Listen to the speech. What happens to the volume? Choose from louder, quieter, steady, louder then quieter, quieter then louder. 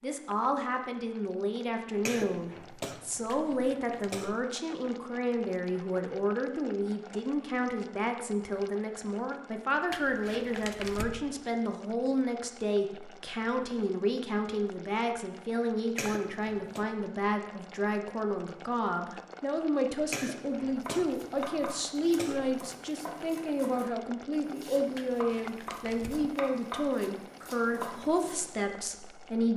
steady.